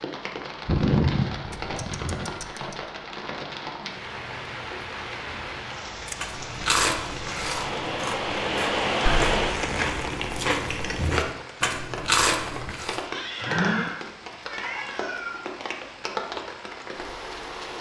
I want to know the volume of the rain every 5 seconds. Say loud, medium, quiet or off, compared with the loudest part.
medium, loud, medium, medium.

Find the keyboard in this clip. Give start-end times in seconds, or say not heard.
not heard.